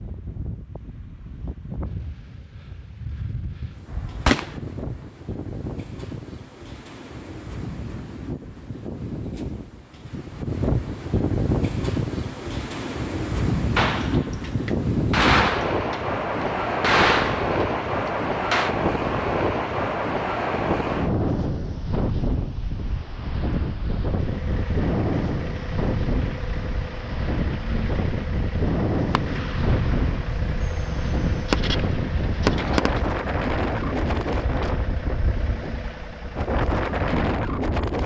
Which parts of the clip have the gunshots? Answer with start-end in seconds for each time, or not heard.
3.9-4.5, 13.8-18.7, 29.1-33.0.